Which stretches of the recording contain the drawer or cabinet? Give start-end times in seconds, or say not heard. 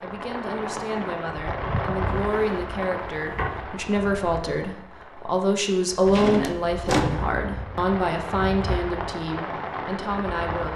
2.0-3.6, 6.0-7.2.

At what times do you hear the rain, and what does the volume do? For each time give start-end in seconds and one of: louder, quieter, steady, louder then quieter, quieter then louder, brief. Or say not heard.
0.0-10.7 quieter then louder.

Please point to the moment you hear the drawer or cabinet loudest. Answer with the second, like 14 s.
7 s.